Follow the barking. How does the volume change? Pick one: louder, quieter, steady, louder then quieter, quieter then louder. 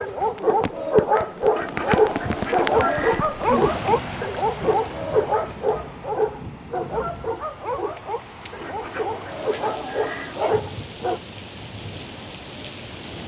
quieter.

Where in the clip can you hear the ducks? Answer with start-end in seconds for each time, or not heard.
1.6-3.2, 8.6-10.6.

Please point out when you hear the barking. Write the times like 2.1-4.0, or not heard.
0.0-11.2.